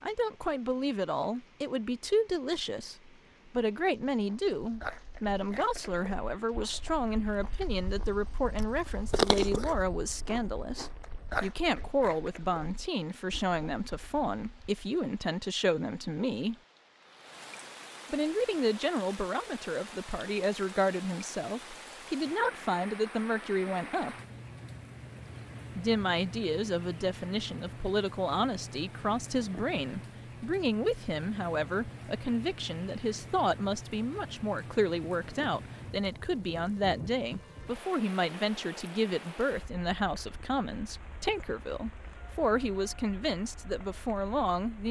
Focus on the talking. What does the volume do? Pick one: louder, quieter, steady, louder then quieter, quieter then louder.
steady.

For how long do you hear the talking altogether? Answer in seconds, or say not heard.
42 s.